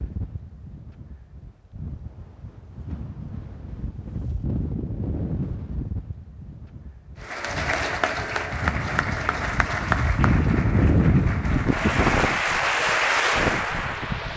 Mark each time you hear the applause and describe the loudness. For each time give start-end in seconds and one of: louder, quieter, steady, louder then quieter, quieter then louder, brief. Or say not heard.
7.2-14.3 quieter then louder.